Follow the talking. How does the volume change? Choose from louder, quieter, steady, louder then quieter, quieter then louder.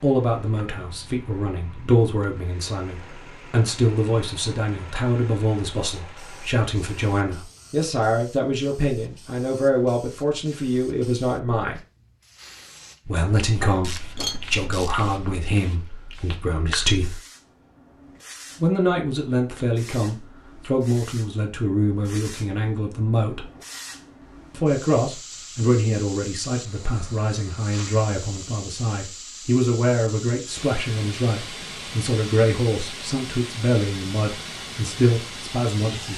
steady.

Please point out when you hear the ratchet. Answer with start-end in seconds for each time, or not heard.
13.7-15.1.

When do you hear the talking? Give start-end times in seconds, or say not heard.
0.0-11.8, 13.1-17.2, 18.6-23.4, 24.5-36.1.